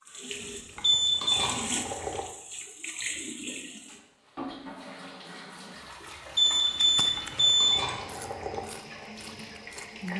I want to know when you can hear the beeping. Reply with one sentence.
You can hear the beeping from 0.8 to 1.4 s and from 6.3 to 7.8 s.